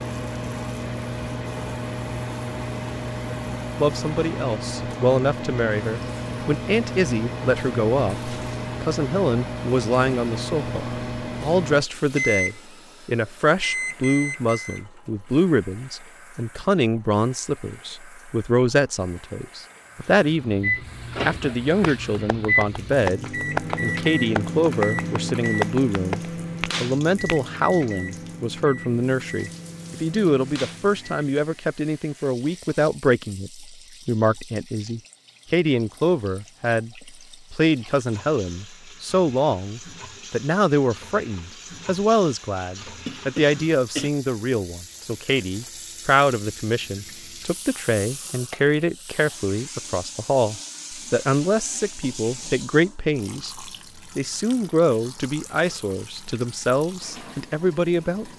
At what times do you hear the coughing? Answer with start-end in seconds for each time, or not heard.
43.0-44.1.